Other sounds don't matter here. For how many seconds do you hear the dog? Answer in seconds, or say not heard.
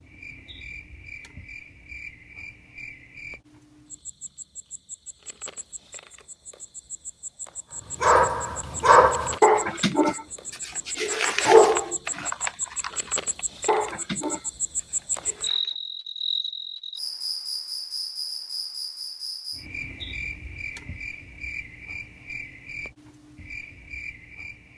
8 s.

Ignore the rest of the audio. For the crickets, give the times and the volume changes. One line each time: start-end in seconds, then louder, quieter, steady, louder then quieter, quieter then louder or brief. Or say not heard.
0.0-24.7 louder then quieter.